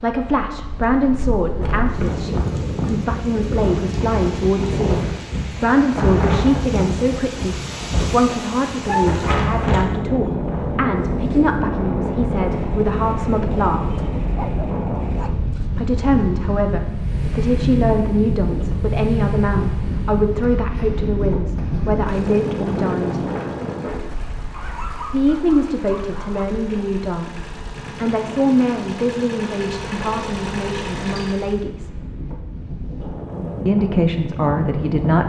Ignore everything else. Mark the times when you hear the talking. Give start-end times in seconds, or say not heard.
0.0-13.8, 15.8-23.2, 25.1-31.9, 33.6-35.2.